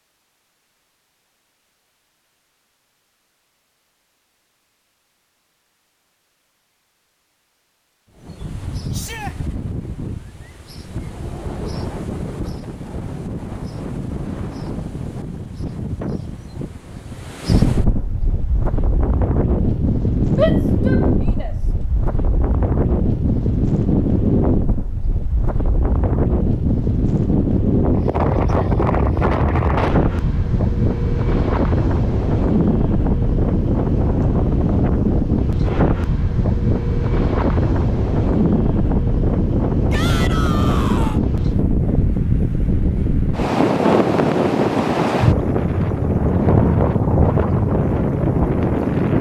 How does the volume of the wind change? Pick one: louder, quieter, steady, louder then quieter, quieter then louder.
louder.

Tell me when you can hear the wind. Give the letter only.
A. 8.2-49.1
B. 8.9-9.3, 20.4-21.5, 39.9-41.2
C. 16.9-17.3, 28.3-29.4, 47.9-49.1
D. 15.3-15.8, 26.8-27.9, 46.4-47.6
A.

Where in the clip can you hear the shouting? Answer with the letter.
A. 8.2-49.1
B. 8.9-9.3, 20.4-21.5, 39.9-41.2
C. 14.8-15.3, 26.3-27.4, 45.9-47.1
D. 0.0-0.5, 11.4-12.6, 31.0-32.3
B.